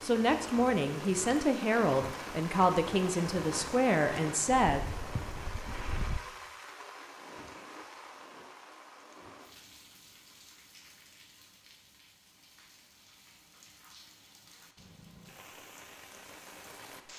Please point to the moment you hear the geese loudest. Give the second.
6 s.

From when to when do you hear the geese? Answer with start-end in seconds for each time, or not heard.
4.8-6.2.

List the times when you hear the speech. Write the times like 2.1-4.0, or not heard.
0.0-4.8.